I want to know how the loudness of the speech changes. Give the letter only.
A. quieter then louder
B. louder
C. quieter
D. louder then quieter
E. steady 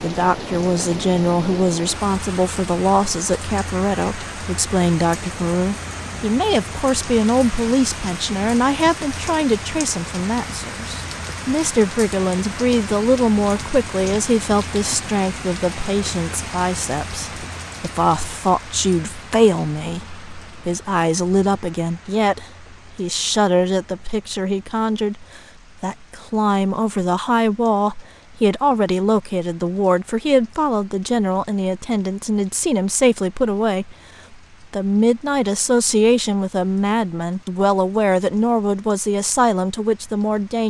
E.